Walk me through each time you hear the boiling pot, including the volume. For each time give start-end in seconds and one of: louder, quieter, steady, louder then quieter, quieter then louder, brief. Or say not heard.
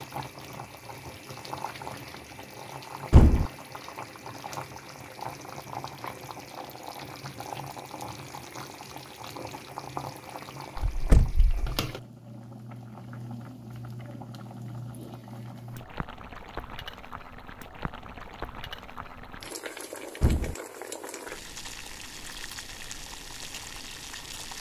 0.0-24.5 steady.